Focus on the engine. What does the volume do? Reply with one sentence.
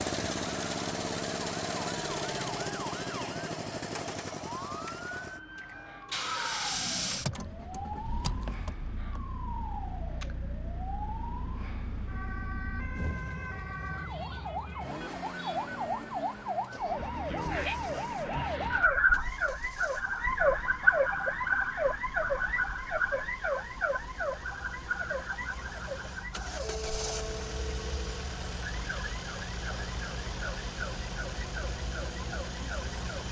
The volume of the engine goes down, then up.